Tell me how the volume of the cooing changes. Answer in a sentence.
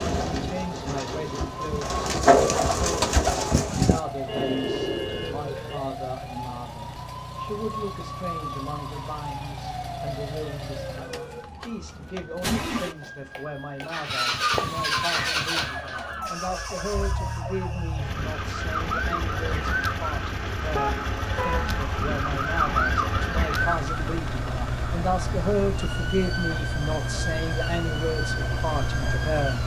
The loudness of the cooing goes up, then down.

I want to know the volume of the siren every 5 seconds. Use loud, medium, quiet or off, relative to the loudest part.
medium, medium, medium, loud, loud, medium.